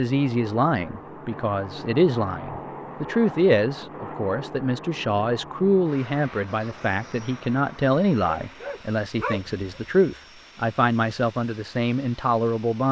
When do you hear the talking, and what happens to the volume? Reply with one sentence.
The talking can be heard from 0.0 to 12.8 s, at a steady volume.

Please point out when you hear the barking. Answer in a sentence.
The barking can be heard from 8.3 to 9.8 s.